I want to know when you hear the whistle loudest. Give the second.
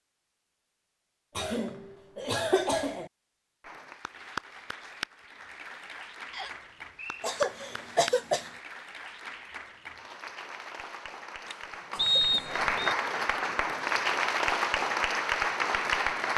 12 s.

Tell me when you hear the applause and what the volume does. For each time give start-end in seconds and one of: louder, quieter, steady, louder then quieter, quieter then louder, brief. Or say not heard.
3.6-16.3 louder.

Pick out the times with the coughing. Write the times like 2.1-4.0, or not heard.
1.4-3.1, 7.2-8.5, 11.4-13.0.